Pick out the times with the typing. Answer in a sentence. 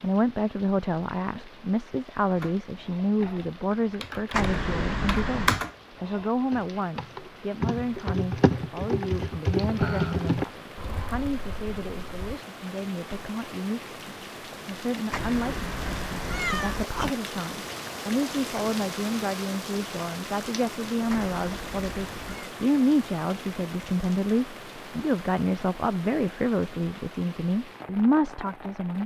The typing can be heard from 2.4 to 12.4 s.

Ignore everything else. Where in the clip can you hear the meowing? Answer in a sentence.
The meowing can be heard from 4.3 to 5.6 s, from 15.1 to 17.1 s and from 21.1 to 22.5 s.